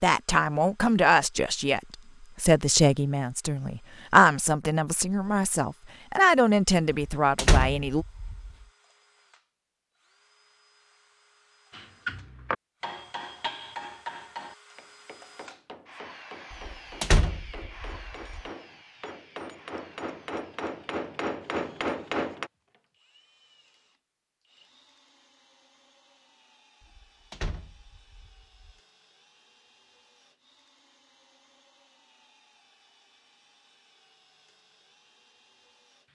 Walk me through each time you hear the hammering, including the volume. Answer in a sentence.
You can hear the hammering from 11.7 to 22.5 s, getting quieter then louder.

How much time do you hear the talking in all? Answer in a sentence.
The talking can be heard for 8 seconds in total.